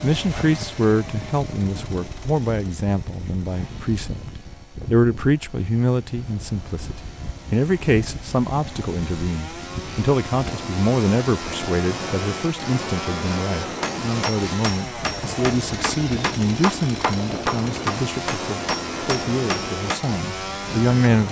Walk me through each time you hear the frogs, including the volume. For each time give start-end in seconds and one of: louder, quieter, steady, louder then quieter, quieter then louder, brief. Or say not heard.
not heard.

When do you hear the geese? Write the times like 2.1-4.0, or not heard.
not heard.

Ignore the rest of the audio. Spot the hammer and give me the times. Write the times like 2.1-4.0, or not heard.
13.8-20.1.